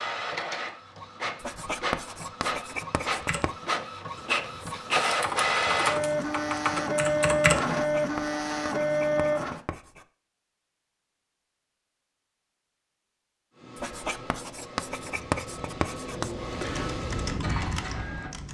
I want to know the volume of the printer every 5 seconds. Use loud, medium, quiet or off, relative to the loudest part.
medium, loud, quiet, medium.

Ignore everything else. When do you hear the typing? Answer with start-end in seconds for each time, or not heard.
3.2-7.8, 15.0-18.4.